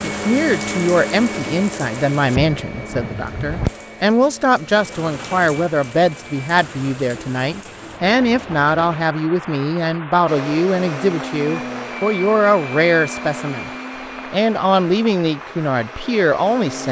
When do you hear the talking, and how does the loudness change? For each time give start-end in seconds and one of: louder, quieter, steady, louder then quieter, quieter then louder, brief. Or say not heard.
0.0-13.7 steady
14.3-16.8 brief.